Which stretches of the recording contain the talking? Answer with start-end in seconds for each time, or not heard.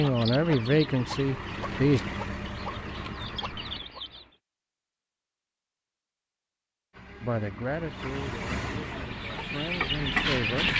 0.0-2.0, 7.2-10.7.